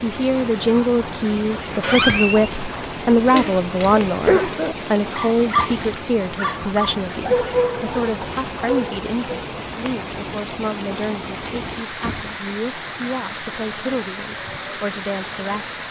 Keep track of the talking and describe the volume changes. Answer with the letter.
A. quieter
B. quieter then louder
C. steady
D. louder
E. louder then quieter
A.